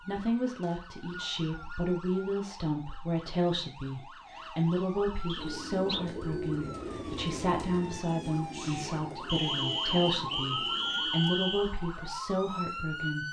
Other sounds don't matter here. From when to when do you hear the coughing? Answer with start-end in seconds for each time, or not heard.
not heard.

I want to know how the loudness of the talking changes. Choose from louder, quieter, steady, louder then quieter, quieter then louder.
steady.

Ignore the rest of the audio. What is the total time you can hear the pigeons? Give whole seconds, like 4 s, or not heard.
6 s.